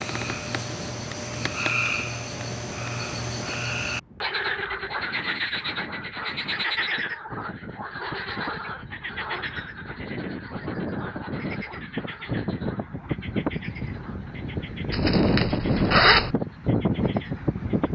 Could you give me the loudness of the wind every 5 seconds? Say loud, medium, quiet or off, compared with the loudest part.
quiet, quiet, medium, loud.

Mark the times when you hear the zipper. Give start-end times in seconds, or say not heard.
14.9-16.4.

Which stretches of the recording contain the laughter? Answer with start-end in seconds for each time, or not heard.
not heard.